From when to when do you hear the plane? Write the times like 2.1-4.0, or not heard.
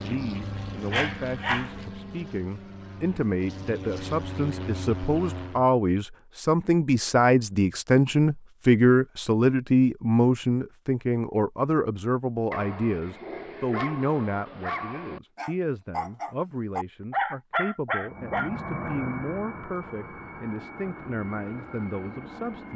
0.0-5.7, 18.0-22.7.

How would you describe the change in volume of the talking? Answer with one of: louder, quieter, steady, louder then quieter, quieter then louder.
louder then quieter.